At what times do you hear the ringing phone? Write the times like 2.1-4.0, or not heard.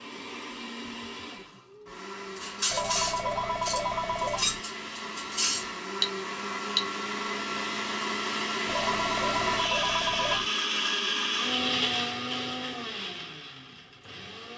2.7-4.6, 8.7-10.5.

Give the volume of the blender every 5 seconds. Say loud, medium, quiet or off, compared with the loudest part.
medium, loud, loud.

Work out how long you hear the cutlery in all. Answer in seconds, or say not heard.
4 s.